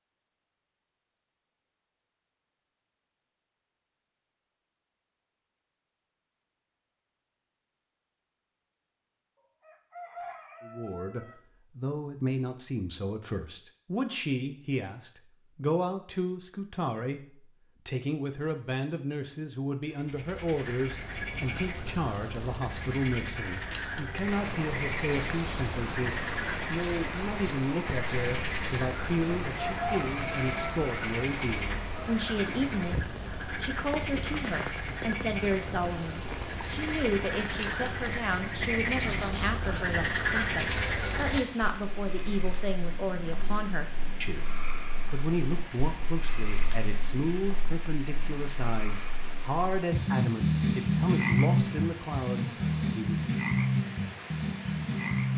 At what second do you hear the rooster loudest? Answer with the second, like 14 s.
30 s.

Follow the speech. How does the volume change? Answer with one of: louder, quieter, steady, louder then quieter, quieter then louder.
steady.